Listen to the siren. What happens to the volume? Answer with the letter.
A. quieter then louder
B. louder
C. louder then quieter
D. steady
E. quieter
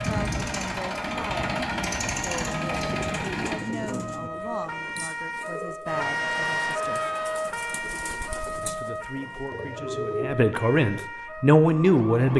C.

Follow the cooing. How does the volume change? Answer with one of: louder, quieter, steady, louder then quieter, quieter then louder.
quieter then louder.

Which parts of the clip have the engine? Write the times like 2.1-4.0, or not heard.
0.0-3.6.